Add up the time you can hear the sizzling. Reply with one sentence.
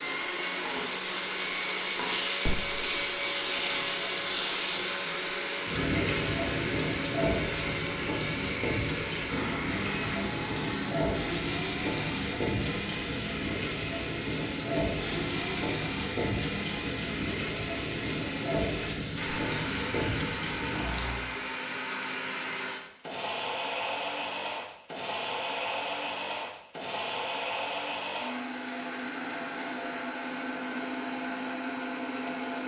The sizzling can be heard for 21 seconds in total.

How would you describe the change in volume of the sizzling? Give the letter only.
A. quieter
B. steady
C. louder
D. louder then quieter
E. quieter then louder
B.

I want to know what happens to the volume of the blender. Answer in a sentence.
The loudness of the blender stays about the same.